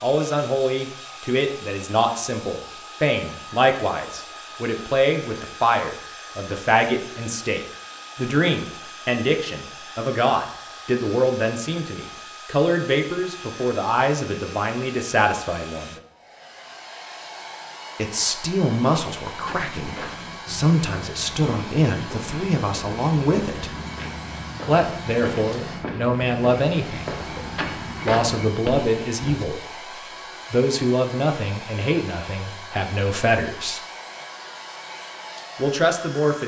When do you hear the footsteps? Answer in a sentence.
The footsteps can be heard from 19.3 to 29.5 s.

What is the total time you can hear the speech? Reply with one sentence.
The speech can be heard for 30 seconds in total.